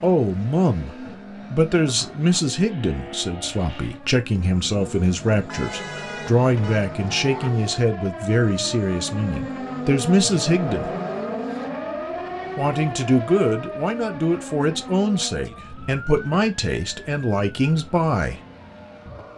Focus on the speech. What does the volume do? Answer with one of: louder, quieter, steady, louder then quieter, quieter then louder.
steady.